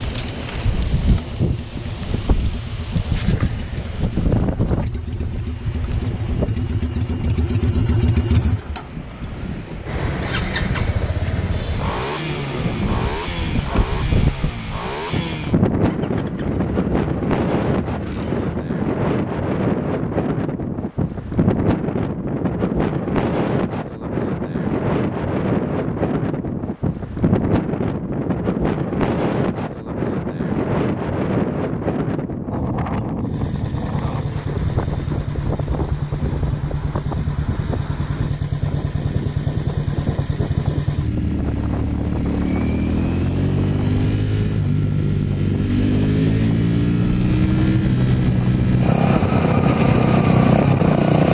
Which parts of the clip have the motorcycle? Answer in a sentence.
The motorcycle can be heard from 0.0 to 18.8 s and from 33.2 to 51.2 s.